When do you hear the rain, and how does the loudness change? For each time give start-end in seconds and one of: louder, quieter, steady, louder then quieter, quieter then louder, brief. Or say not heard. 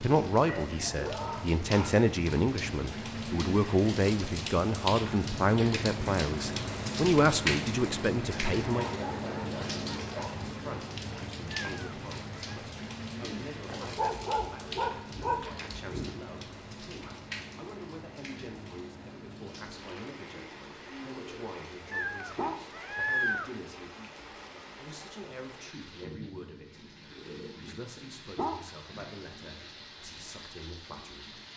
0.0-31.5 quieter.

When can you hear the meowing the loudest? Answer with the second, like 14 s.
23 s.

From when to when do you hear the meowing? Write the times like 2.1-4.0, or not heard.
11.5-12.6, 21.9-23.5.